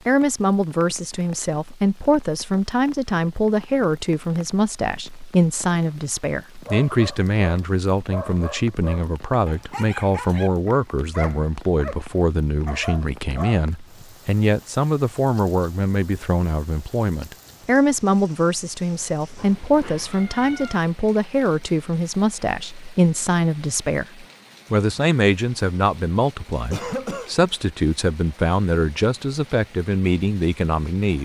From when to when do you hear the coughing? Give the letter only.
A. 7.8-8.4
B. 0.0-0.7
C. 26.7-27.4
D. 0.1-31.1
C.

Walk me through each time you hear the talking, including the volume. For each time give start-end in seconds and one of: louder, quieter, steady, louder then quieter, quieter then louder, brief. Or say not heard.
0.1-31.1 steady.